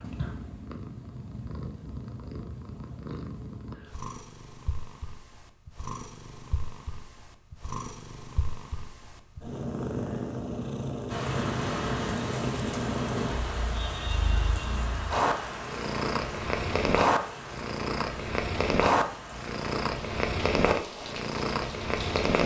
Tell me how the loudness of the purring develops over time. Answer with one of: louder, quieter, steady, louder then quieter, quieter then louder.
louder.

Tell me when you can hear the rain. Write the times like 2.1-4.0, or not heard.
11.1-22.4.